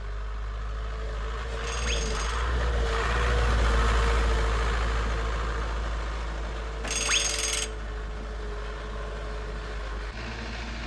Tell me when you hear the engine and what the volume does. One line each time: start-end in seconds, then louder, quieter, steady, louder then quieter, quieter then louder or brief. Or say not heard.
0.0-10.8 louder then quieter.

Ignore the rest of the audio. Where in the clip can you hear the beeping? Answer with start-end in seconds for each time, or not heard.
1.6-2.5, 6.8-7.7.